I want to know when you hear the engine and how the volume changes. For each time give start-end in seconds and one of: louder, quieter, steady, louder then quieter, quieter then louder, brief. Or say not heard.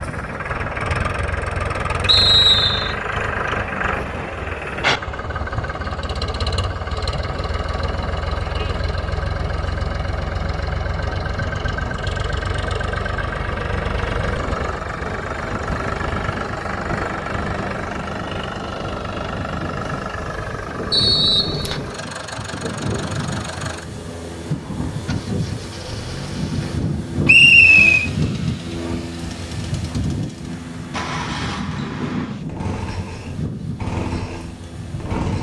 0.0-35.3 quieter.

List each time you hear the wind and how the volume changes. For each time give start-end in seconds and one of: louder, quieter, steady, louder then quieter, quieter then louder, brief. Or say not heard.
0.0-35.3 louder.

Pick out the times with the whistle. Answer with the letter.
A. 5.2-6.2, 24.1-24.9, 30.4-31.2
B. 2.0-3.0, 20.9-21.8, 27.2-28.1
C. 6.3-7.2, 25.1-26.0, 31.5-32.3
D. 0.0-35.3
B.